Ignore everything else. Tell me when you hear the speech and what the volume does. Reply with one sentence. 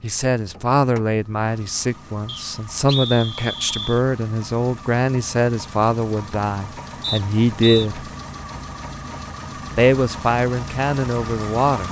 You can hear the speech from 0.0 to 8.1 s, at a steady volume; and briefly from 9.8 to 11.8 s.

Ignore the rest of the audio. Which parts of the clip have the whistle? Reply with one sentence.
The whistle can be heard from 2.2 to 4.0 s and from 7.0 to 7.9 s.